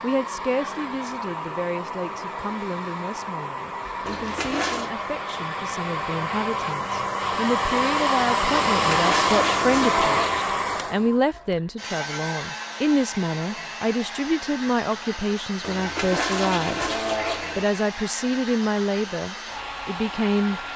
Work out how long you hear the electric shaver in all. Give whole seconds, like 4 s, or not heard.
not heard.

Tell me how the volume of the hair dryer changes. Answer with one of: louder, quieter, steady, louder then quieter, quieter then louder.
louder then quieter.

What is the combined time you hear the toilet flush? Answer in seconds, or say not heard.
5 s.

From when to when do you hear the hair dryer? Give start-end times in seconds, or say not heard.
0.0-20.7.